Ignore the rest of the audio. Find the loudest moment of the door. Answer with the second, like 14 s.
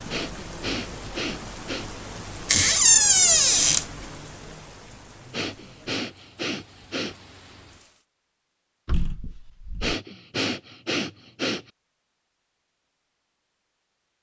3 s.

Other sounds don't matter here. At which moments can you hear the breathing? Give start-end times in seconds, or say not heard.
0.1-1.9, 5.3-7.2, 9.8-11.7.